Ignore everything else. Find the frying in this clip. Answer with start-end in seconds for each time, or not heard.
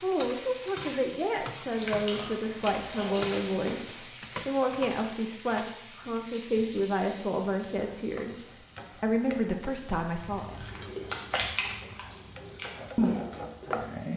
0.0-14.1.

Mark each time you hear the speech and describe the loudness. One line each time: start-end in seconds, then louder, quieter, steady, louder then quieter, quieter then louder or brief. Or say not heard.
0.0-10.6 steady.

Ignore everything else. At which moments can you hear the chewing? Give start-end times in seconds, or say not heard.
1.6-4.0, 10.3-13.8.